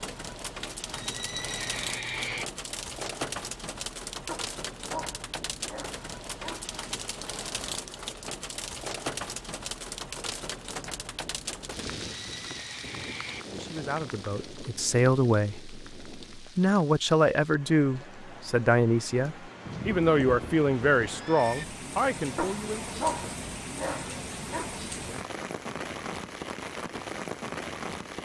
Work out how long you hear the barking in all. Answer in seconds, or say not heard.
5 s.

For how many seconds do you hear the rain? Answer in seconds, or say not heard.
28 s.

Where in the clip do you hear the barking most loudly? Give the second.
23 s.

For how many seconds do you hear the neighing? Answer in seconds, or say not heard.
5 s.